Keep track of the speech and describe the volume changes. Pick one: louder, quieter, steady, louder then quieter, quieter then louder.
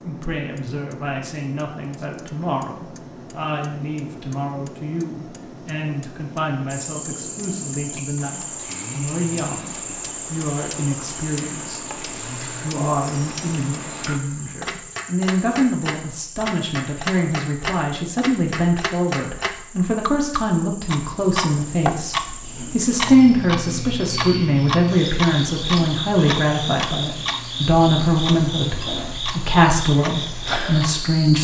louder.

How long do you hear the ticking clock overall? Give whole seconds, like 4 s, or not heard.
31 s.